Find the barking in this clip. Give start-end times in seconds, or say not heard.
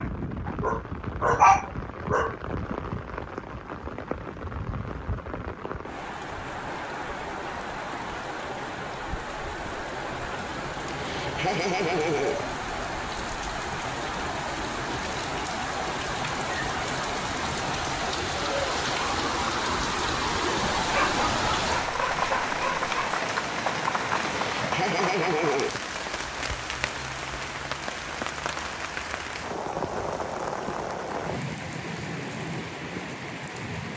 0.5-2.4, 20.8-23.2.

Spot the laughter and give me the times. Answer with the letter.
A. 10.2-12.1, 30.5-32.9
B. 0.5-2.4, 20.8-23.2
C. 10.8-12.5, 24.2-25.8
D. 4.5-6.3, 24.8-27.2
C.